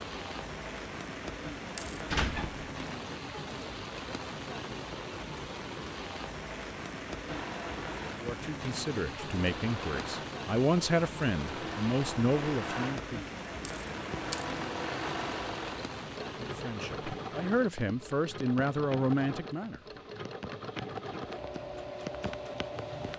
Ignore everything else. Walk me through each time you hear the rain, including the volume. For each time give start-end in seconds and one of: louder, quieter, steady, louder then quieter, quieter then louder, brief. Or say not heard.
0.0-23.1 quieter.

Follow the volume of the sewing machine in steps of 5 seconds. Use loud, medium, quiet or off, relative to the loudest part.
off, loud, loud, loud, loud.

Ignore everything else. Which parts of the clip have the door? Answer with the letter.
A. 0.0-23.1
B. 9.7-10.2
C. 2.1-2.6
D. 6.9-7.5
C.